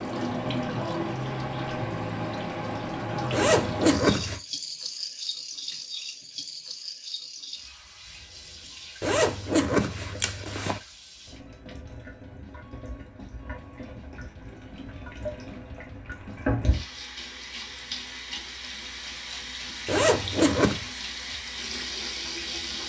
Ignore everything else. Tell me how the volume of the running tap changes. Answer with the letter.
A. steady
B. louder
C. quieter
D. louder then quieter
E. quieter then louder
E.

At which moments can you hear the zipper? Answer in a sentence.
You can hear the zipper from 3.3 to 4.4 s, from 9.0 to 10.8 s and from 19.9 to 20.9 s.